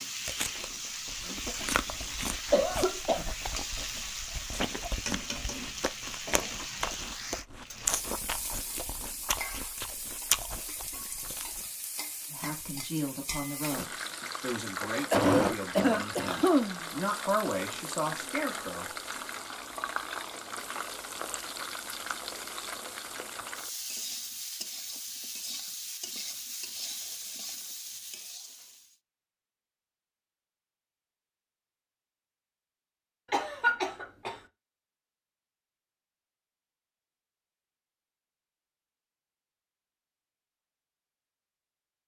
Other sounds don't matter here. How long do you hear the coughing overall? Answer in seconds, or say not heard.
4 s.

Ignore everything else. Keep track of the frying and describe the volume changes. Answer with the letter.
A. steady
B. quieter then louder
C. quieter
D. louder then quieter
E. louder
A.